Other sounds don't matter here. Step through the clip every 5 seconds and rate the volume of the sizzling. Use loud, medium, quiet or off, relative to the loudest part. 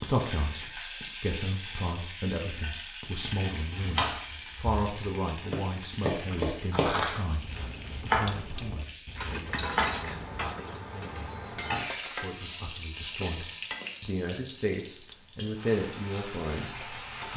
loud, medium, loud, loud.